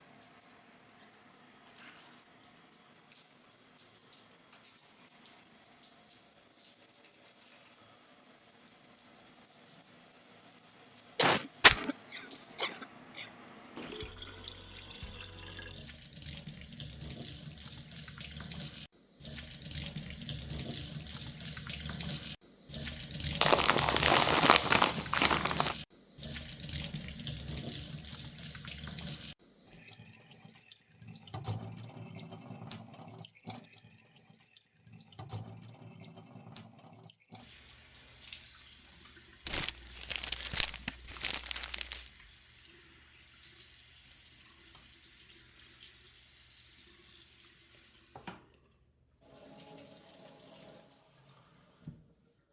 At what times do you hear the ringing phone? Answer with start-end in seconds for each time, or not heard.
not heard.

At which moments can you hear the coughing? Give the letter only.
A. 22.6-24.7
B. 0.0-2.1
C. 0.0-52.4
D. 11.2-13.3
D.